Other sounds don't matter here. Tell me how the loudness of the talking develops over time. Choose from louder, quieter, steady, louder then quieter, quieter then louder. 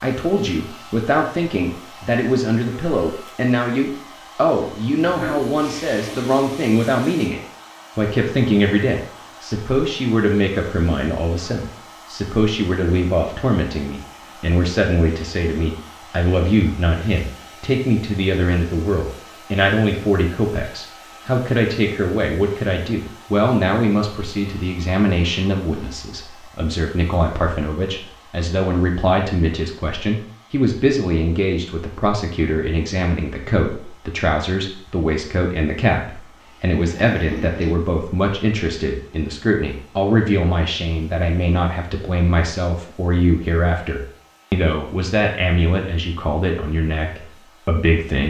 steady.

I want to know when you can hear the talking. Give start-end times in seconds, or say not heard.
0.0-48.2.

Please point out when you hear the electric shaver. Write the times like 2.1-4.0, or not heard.
not heard.